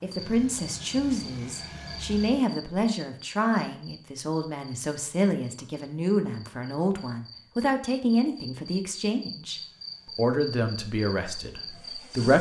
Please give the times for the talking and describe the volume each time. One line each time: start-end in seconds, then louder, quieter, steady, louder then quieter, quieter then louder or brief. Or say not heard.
0.0-12.3 steady.